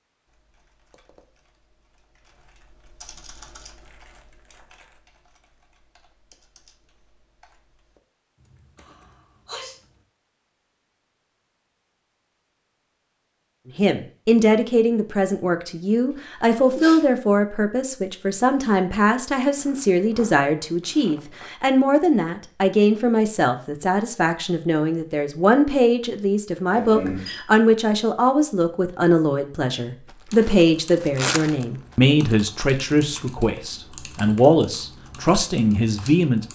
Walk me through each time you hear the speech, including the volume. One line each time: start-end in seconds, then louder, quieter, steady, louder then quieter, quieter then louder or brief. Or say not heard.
13.8-36.5 steady.